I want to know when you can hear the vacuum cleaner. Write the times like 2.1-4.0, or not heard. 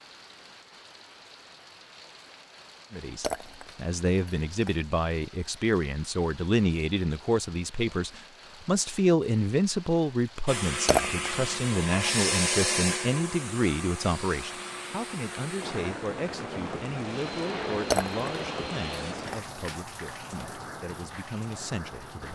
10.4-19.1.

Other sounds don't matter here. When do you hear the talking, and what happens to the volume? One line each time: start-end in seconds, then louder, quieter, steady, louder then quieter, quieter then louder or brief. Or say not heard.
2.9-22.2 quieter.